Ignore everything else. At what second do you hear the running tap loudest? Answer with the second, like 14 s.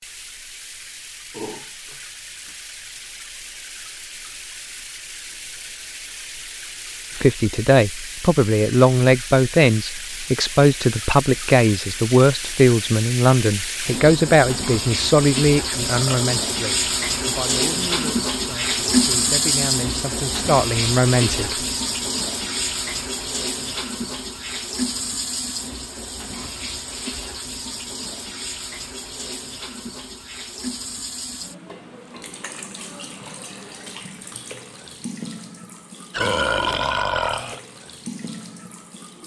19 s.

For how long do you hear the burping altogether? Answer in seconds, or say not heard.
3 s.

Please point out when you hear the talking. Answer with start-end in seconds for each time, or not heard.
7.2-21.6.